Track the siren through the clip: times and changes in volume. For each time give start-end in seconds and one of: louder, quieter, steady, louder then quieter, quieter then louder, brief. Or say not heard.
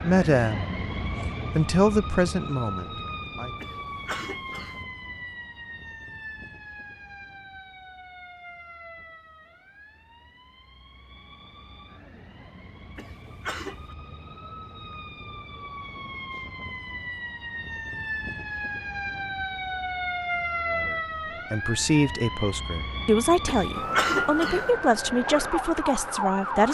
0.0-26.7 quieter then louder.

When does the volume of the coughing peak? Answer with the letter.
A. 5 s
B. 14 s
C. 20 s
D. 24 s
D.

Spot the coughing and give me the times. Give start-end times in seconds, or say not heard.
3.6-4.8, 12.9-13.9, 23.4-24.7.